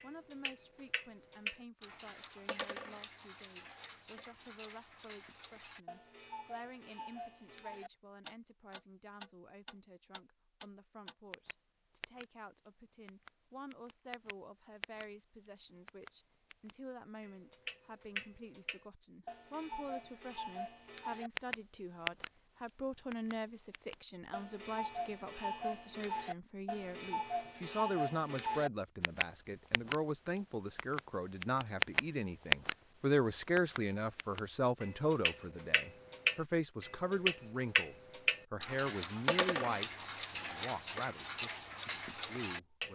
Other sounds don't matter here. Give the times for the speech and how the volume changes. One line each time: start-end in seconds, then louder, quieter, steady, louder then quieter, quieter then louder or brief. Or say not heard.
0.0-42.9 louder.